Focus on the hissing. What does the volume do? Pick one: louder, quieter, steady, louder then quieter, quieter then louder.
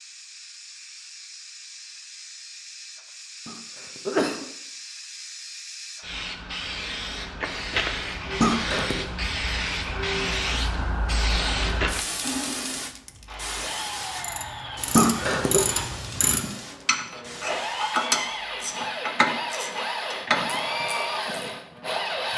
louder then quieter.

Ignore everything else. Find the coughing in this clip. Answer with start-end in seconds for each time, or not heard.
3.5-4.5, 8.4-9.1, 14.9-15.6.